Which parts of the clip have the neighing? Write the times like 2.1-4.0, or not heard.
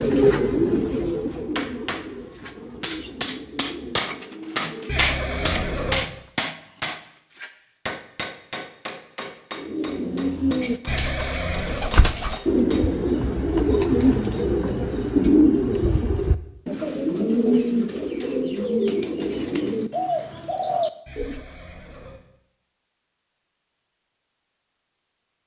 4.8-6.0, 10.8-11.8, 21.1-22.2.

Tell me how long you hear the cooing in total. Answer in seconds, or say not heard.
18 s.